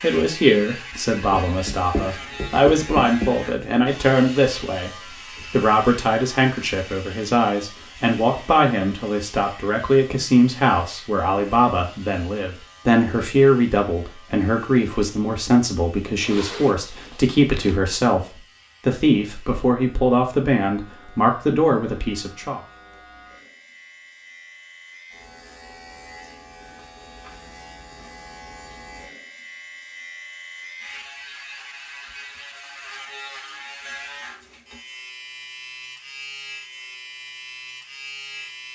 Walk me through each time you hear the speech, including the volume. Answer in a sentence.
The speech can be heard from 0.0 to 22.6 s, at a steady volume.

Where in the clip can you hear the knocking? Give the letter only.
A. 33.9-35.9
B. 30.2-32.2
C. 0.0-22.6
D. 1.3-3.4
D.